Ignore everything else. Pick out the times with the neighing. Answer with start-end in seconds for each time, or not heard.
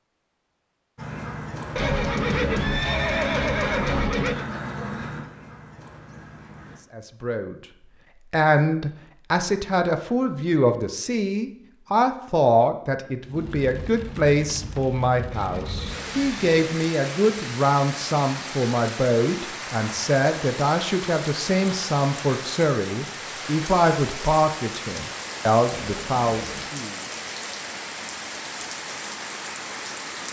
1.8-4.5, 15.3-16.5, 25.8-26.7.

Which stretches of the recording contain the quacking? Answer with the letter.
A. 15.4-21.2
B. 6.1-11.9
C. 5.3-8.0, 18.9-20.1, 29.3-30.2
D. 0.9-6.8
D.